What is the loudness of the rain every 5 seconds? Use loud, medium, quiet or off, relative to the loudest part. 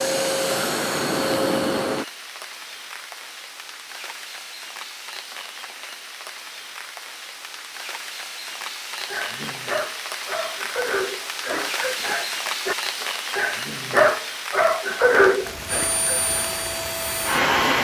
medium, medium, loud, medium.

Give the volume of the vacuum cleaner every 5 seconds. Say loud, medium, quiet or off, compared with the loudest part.
loud, off, off, loud.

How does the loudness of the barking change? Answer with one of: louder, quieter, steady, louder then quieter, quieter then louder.
louder.